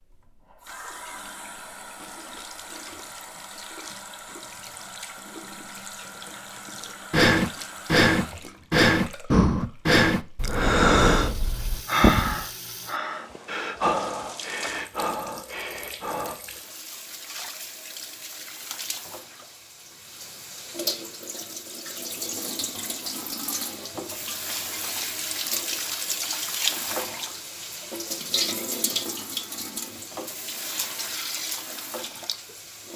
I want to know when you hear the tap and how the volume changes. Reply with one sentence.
The tap can be heard from 0.0 to 32.9 s, getting louder.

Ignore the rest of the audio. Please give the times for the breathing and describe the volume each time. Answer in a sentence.
The breathing can be heard from 7.1 to 16.4 s, getting quieter.